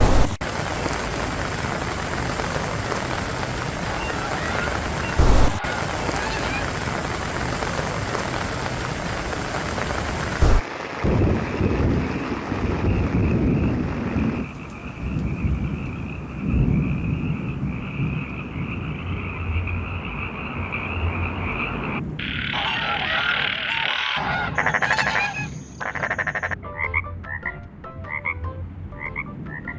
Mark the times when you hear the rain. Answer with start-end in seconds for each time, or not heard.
0.0-29.7.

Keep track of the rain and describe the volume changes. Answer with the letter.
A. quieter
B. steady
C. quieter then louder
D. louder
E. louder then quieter
A.